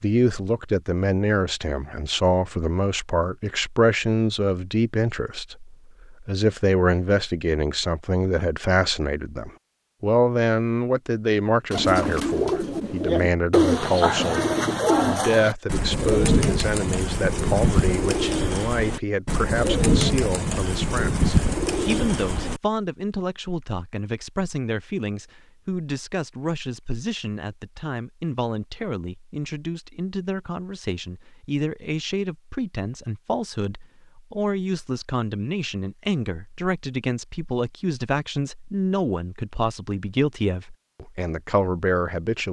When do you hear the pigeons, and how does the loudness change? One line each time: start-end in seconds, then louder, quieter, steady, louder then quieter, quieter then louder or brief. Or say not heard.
11.7-22.6 steady.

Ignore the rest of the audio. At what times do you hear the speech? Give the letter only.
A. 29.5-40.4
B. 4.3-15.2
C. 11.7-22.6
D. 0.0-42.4
D.